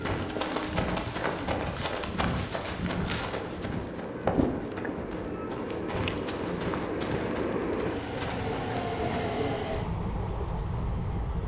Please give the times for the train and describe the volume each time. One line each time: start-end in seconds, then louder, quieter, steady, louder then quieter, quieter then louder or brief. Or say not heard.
0.0-11.4 louder.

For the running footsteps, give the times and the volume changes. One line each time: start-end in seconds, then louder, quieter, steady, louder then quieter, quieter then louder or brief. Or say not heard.
0.0-8.8 quieter.